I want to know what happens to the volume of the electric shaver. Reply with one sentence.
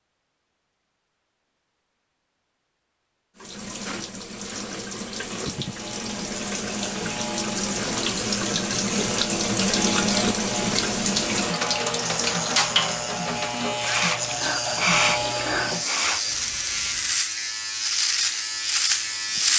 The loudness of the electric shaver goes up.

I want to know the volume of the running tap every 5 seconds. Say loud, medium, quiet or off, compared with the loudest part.
medium, loud, loud, medium.